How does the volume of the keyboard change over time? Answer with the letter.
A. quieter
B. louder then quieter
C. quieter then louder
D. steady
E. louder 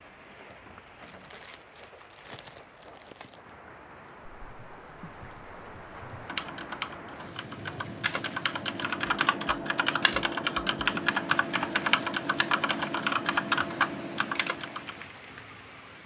E.